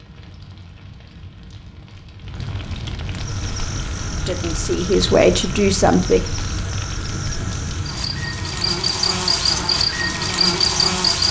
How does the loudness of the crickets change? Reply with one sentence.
The volume of the crickets goes up.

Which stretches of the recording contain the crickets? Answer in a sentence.
You can hear the crickets from 3.0 to 11.2 s.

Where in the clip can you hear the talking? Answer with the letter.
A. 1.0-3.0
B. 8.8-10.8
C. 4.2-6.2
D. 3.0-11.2
C.